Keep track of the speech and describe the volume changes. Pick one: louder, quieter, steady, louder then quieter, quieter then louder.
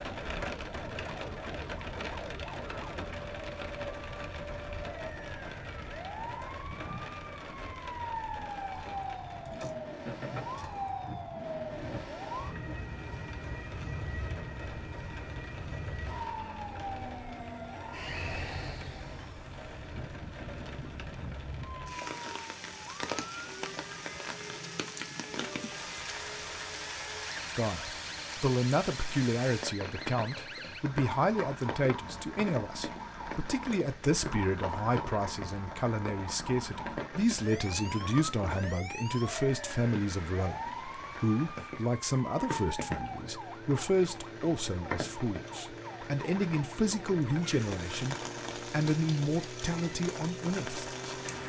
steady.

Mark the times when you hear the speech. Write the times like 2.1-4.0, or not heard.
27.5-50.9.